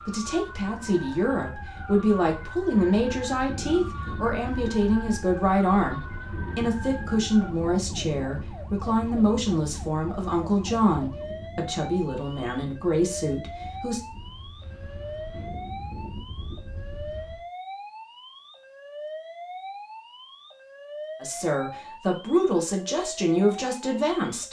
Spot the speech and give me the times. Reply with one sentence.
You can hear the speech from 0.0 to 14.0 s and from 21.2 to 24.4 s.